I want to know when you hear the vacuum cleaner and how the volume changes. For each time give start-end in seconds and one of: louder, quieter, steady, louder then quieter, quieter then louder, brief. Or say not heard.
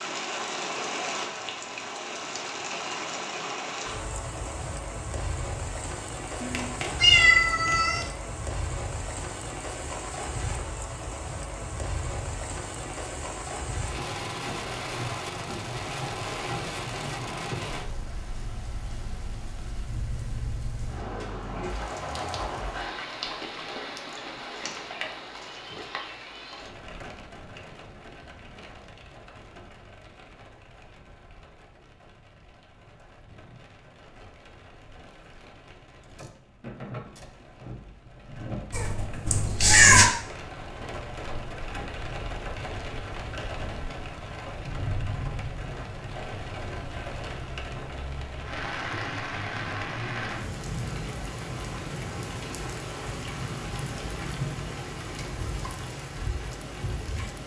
not heard.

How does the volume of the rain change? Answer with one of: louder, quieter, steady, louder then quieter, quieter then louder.
quieter then louder.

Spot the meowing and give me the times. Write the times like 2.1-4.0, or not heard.
6.4-8.1, 24.1-26.6, 38.7-40.1.